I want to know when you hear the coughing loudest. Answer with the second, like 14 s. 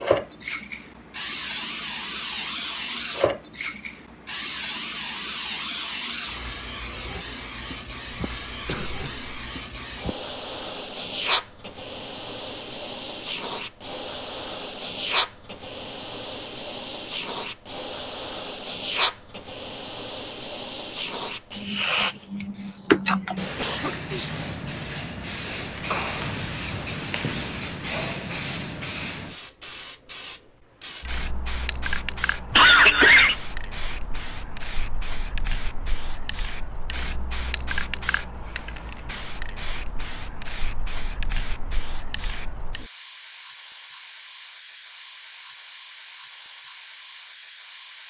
33 s.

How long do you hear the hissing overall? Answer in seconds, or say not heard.
48 s.